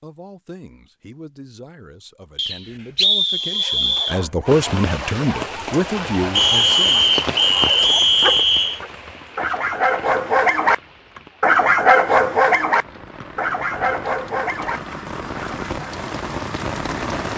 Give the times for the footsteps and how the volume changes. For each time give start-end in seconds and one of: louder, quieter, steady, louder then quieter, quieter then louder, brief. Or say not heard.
not heard.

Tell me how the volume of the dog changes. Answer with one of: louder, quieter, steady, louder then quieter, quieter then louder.
louder then quieter.